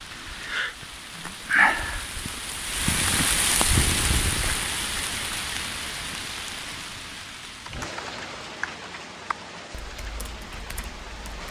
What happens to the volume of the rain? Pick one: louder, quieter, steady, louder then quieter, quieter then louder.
quieter.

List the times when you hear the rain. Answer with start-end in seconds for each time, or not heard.
0.0-11.4.